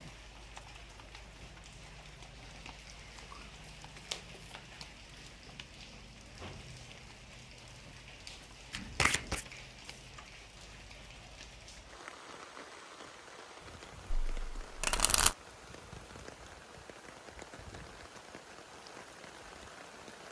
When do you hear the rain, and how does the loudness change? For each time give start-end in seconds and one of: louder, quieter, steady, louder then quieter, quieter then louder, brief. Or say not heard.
0.0-20.2 steady.